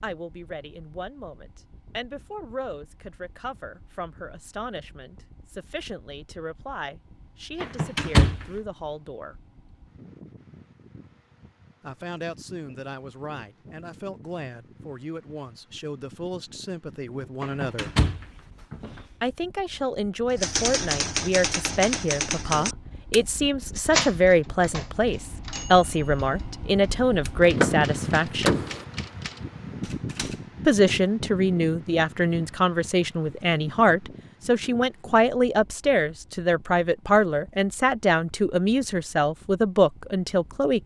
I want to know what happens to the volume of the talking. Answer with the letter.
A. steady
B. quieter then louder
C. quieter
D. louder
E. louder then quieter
D.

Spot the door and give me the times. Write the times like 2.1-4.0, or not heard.
7.6-8.4, 17.4-19.0, 27.4-28.9.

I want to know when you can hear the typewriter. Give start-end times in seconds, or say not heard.
20.3-30.5.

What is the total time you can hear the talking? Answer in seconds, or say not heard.
35 s.